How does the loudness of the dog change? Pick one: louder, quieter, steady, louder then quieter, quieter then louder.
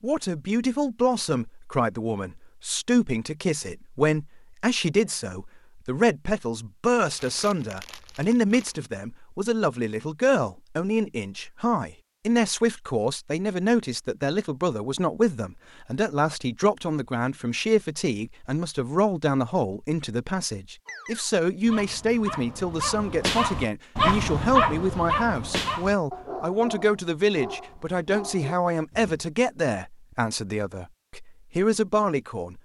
louder then quieter.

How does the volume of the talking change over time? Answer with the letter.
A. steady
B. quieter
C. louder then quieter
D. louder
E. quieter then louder
A.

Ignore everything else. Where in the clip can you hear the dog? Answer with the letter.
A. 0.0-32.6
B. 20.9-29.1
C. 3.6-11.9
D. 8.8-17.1
B.